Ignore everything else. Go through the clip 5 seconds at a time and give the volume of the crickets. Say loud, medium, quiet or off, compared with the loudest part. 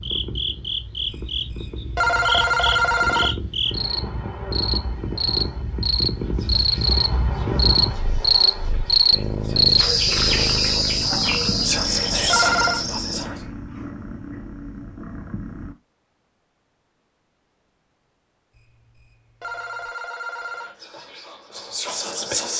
medium, loud, loud, off, off.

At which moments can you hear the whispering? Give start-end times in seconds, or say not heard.
6.2-13.4, 20.4-22.5.